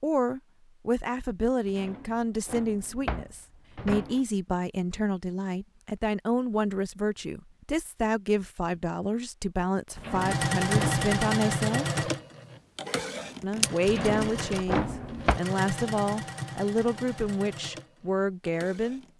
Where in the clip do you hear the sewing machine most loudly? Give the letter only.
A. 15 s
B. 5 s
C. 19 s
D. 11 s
D.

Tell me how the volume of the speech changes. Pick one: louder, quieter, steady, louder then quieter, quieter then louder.
steady.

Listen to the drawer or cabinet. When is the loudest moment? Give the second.
15 s.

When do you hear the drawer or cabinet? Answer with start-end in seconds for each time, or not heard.
1.6-4.2, 9.9-11.1, 13.8-15.4.